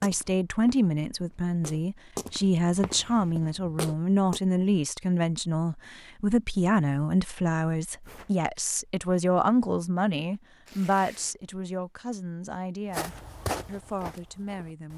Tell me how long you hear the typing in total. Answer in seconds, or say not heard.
not heard.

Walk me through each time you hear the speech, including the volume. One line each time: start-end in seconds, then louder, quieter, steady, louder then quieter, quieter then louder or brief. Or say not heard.
0.0-14.9 quieter.